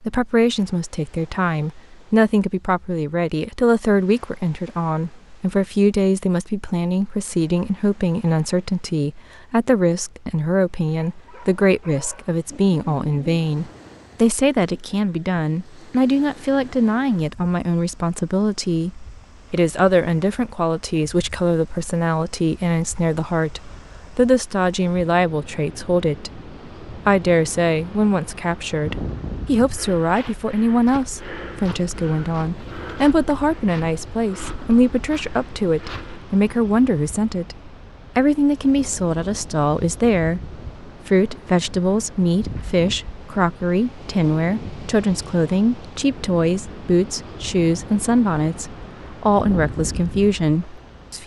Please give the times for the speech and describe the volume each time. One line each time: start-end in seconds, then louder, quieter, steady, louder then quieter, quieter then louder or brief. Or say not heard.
0.0-51.2 steady.